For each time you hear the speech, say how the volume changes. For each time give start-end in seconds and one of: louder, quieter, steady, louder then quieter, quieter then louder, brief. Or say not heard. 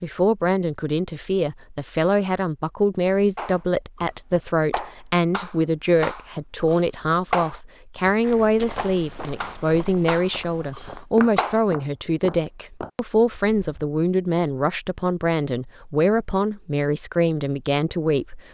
0.0-18.4 steady.